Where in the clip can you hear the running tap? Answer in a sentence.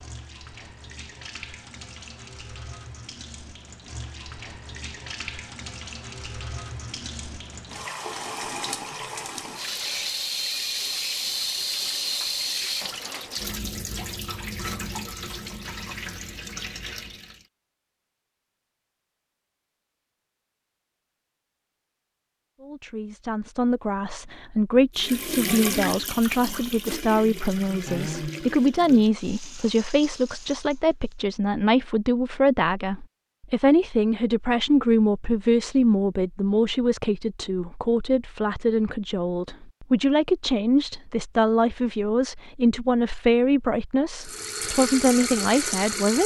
The running tap can be heard from 0.0 to 17.4 s, from 24.9 to 31.1 s and from 44.2 to 46.2 s.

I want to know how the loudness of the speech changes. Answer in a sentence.
The loudness of the speech stays about the same.